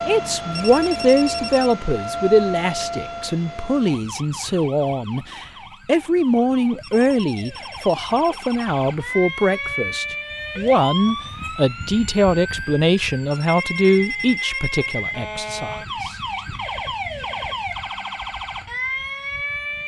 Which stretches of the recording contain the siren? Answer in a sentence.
The siren can be heard from 0.0 to 19.8 s.